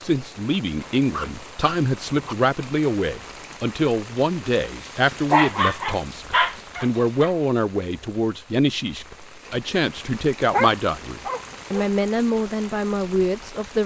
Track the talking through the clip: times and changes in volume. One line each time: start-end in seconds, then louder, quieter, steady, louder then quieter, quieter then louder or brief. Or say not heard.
0.0-13.8 steady.